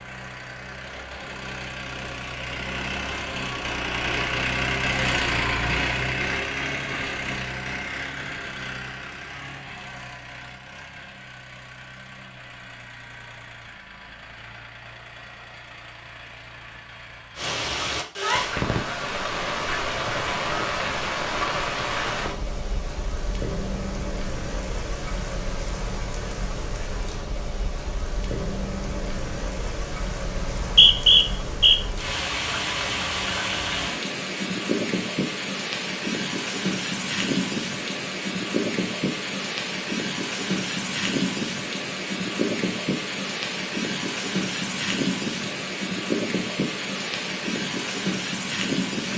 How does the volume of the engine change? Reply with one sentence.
The volume of the engine goes up, then down.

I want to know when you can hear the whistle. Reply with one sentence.
You can hear the whistle from 30.4 to 31.8 s.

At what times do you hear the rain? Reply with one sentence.
You can hear the rain from 17.4 to 49.1 s.